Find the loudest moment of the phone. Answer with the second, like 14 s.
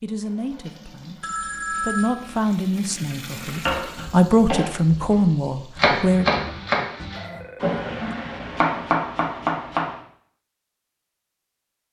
2 s.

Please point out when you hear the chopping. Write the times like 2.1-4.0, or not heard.
3.6-9.9.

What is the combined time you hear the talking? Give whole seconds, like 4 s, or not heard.
6 s.